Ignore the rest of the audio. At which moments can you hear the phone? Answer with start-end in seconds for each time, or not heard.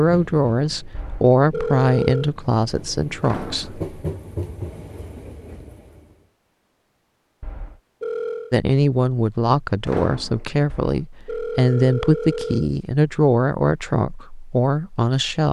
0.9-2.3, 7.4-8.6, 10.7-12.7.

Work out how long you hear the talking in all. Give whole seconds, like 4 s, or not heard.
11 s.